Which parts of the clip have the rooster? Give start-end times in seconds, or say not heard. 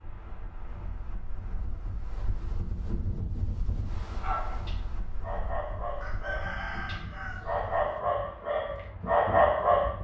6.0-8.0.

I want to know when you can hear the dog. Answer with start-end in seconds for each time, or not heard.
4.1-9.9.